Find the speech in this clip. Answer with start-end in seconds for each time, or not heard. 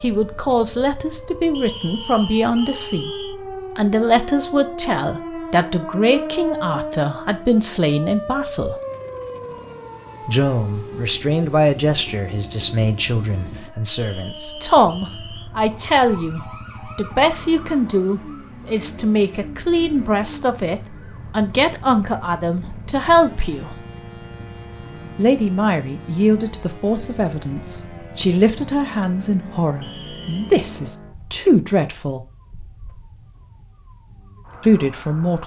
0.0-3.1, 3.8-8.8, 10.2-23.8, 25.1-32.2, 34.6-35.4.